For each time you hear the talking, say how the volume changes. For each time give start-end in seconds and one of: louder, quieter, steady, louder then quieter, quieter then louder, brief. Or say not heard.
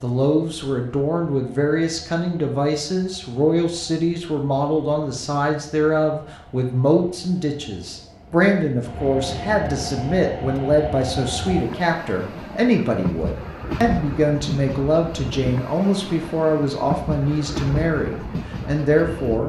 0.0-19.4 steady.